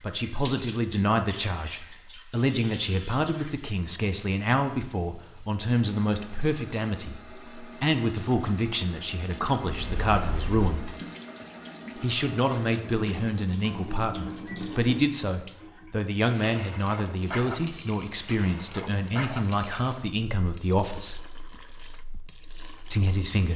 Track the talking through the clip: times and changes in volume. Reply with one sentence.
The talking can be heard from 0.0 to 10.9 s, at a steady volume; from 11.9 to 21.2 s, at a steady volume; and briefly from 22.9 to 23.5 s.